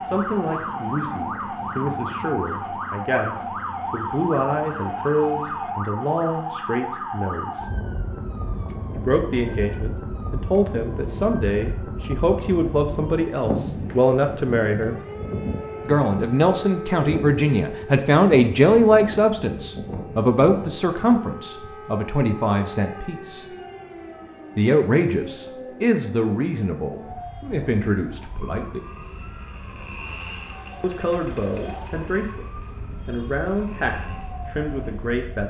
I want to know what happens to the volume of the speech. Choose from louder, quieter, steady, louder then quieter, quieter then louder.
louder then quieter.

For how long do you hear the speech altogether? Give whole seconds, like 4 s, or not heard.
30 s.